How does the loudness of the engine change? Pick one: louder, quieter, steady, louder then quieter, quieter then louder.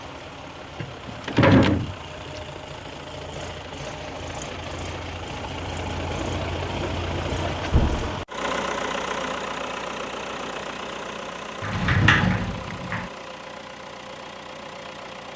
louder then quieter.